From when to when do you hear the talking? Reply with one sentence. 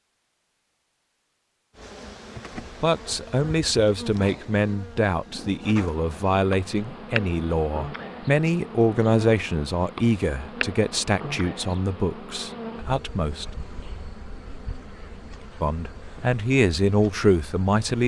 You can hear the talking from 2.8 to 13.4 s and from 15.6 to 18.0 s.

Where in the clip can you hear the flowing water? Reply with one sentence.
You can't hear the flowing water here.